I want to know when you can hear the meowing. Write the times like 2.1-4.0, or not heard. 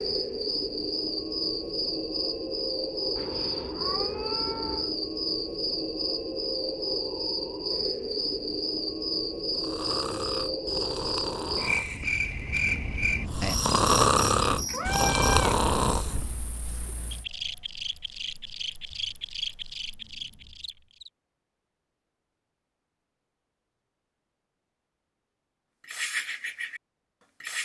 3.1-5.0, 14.7-15.7.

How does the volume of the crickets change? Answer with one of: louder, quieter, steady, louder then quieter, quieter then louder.
quieter.